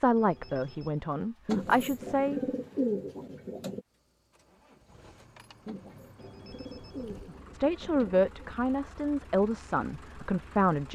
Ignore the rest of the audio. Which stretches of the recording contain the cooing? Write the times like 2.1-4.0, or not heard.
1.4-3.8, 5.7-8.5.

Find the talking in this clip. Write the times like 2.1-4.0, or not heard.
0.0-2.4, 7.5-10.8.